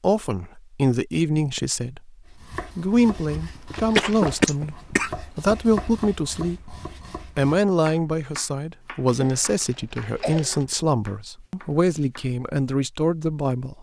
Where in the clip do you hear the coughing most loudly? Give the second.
4 s.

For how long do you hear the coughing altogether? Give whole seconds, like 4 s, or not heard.
3 s.